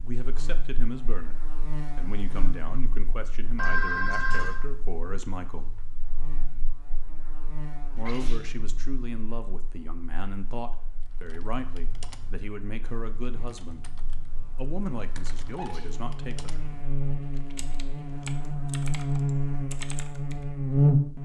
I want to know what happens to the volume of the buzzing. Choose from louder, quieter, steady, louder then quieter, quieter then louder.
quieter then louder.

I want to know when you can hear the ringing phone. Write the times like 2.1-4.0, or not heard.
3.5-4.5.